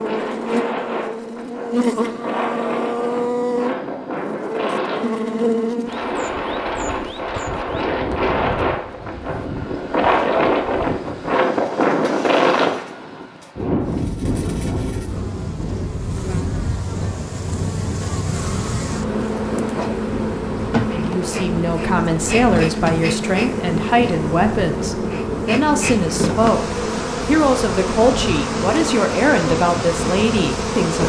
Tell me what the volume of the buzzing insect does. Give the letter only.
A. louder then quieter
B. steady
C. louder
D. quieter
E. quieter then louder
E.